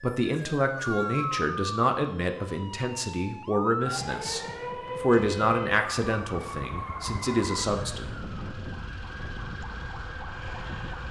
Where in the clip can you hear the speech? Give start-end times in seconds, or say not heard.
0.0-8.1.